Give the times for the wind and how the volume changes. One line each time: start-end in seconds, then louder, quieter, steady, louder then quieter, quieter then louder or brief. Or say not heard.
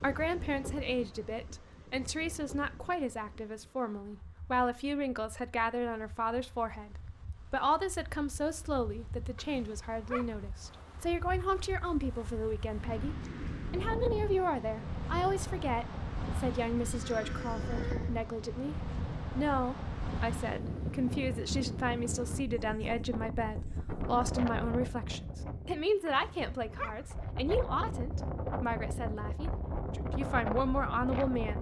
0.0-31.5 louder.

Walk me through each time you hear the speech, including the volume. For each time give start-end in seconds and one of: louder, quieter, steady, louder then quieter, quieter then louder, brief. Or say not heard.
0.0-31.5 steady.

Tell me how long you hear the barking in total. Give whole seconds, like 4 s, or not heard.
2 s.